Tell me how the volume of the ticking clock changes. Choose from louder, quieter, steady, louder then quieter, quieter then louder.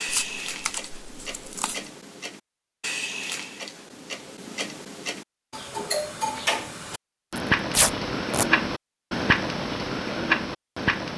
louder.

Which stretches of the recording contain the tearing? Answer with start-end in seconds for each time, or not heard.
0.1-1.9, 7.3-8.4.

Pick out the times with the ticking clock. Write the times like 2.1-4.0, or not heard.
0.0-11.1.